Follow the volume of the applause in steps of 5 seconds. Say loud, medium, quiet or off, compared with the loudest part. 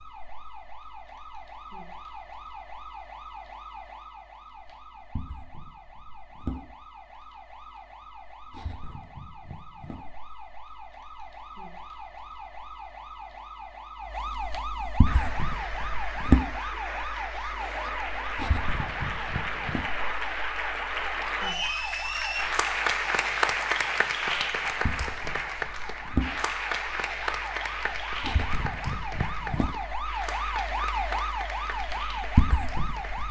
off, off, off, medium, loud, medium, medium.